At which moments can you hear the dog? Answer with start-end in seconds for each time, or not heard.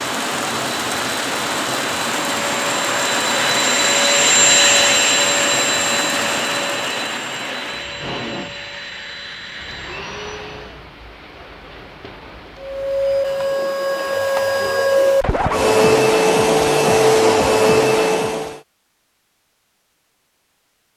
not heard.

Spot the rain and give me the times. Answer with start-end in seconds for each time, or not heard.
0.0-14.2.